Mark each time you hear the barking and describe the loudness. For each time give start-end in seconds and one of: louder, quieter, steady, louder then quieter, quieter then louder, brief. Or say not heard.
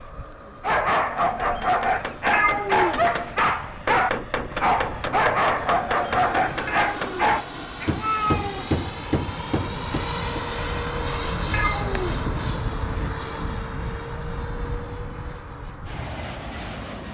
0.6-7.5 steady.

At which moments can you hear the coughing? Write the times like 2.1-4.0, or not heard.
not heard.